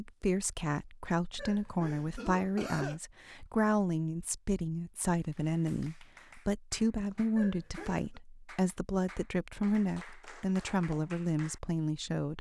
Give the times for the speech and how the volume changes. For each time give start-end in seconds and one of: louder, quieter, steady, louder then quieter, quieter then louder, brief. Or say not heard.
0.0-12.3 steady.